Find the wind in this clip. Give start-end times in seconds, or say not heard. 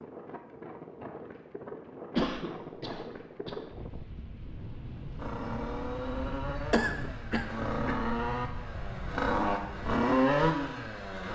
0.0-9.2.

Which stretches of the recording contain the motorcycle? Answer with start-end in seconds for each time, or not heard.
5.2-11.3.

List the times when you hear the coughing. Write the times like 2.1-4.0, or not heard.
2.1-3.6, 6.7-8.0.